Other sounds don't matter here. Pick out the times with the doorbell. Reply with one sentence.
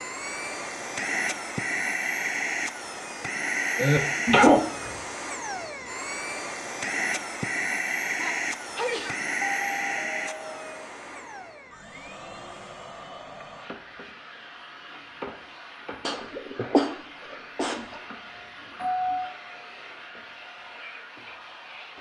The doorbell can be heard from 4.2 to 5.0 s, from 9.4 to 10.7 s and from 17.8 to 19.4 s.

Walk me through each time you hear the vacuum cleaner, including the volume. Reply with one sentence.
You can hear the vacuum cleaner from 0.0 to 21.9 s, getting quieter.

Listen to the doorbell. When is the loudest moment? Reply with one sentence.
The loudest moment of the doorbell is at 19 seconds.